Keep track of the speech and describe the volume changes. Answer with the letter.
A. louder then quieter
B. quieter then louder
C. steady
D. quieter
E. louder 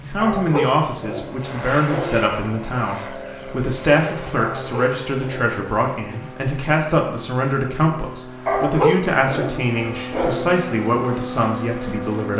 C.